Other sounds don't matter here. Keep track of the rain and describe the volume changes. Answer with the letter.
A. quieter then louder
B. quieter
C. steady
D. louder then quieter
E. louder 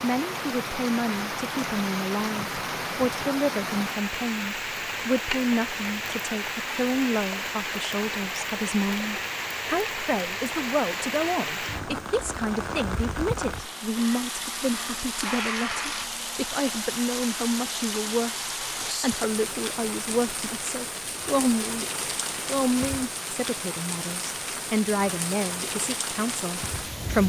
C.